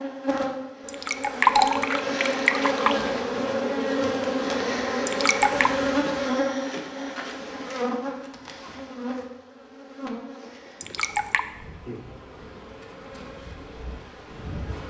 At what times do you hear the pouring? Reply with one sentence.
The pouring can be heard from 0.8 to 3.0 s, from 5.0 to 5.7 s and from 10.8 to 11.4 s.